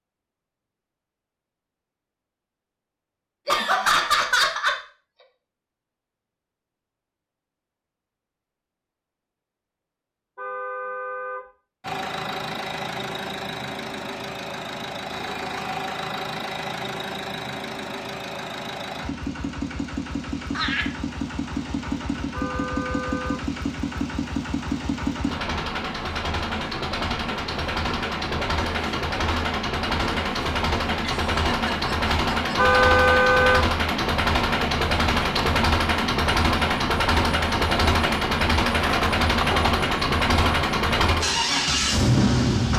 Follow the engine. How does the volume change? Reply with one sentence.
The volume of the engine goes up.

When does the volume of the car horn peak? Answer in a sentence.
The volume of the car horn peaks at 33 seconds.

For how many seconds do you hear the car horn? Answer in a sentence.
You can hear the car horn for 3 seconds altogether.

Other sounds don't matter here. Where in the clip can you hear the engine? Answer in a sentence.
You can hear the engine from 11.8 to 42.7 s.